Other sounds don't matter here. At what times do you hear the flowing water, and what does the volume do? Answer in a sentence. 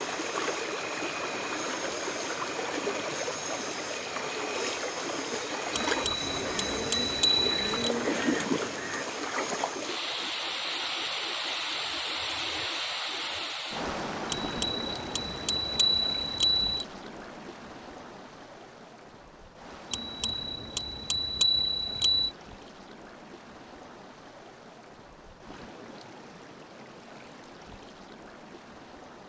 You can hear the flowing water from 0.0 to 29.2 s, getting quieter.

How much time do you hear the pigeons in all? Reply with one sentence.
The pigeons can be heard for 3 seconds in total.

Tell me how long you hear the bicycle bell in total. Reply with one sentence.
You can hear the bicycle bell for 7 seconds altogether.